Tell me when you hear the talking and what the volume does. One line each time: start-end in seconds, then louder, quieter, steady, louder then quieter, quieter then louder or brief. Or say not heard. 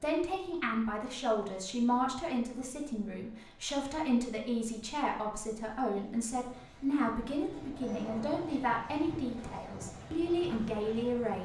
0.0-11.4 steady.